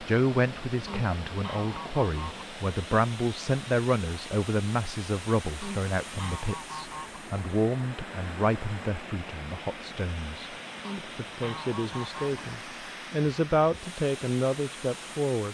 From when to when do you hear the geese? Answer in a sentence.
You can hear the geese from 0.8 to 2.5 s, from 5.6 to 7.2 s and from 10.8 to 12.4 s.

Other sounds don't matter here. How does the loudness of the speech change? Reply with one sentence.
The loudness of the speech goes down, then up.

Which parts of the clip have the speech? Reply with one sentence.
You can hear the speech from 0.0 to 15.4 s.